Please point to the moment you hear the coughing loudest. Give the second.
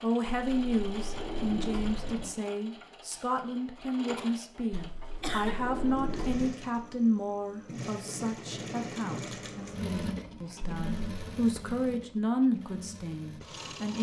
5 s.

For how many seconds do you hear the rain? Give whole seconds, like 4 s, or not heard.
not heard.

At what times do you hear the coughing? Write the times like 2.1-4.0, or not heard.
4.2-5.5.